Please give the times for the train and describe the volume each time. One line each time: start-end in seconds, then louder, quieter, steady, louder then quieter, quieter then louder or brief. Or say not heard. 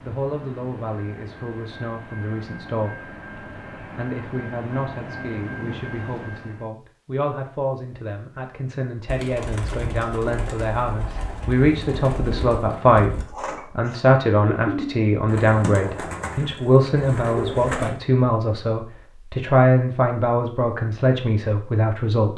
0.0-6.7 louder.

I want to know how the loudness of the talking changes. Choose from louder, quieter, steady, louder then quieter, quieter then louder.
louder.